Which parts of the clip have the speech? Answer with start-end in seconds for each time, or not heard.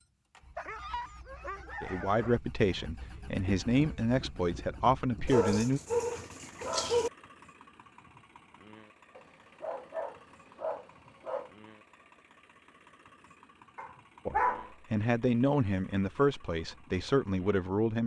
1.8-5.8, 14.2-18.0.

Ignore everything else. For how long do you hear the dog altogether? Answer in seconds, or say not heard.
7 s.